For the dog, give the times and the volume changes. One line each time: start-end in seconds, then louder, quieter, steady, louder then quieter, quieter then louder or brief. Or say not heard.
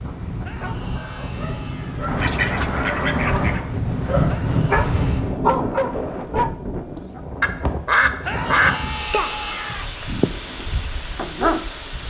0.0-7.2 louder
9.7-12.0 brief.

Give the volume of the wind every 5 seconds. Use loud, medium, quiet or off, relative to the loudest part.
loud, loud, medium.